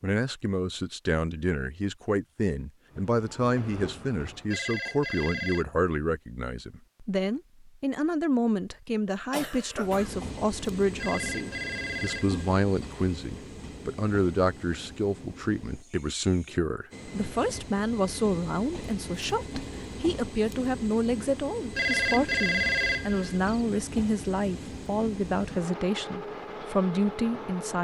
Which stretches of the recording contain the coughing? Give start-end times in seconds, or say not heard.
9.1-10.2.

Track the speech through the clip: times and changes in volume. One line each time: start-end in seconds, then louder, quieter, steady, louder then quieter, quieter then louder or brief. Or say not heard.
0.0-27.7 steady.